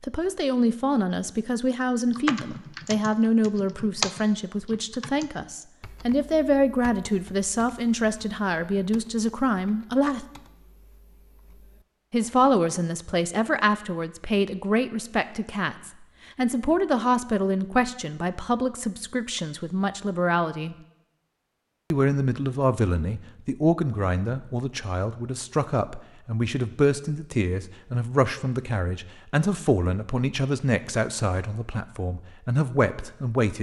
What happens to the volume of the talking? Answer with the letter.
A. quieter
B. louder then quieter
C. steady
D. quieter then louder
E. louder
C.